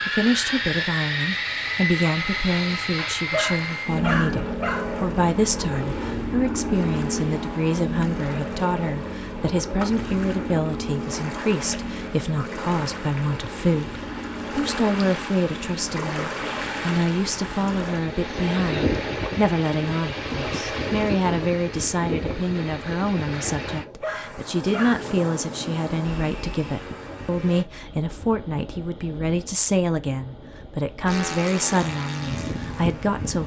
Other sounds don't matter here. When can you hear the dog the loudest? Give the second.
4 s.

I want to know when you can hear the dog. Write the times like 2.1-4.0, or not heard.
3.0-4.9, 23.8-25.1.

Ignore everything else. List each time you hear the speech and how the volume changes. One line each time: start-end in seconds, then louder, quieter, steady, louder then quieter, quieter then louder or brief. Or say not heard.
0.0-33.4 steady.